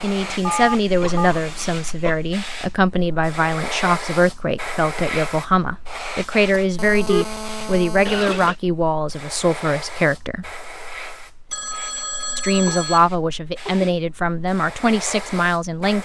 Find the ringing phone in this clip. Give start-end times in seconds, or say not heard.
0.5-1.3, 6.5-8.5, 11.5-13.0.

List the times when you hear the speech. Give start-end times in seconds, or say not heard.
0.0-10.4, 12.3-15.9.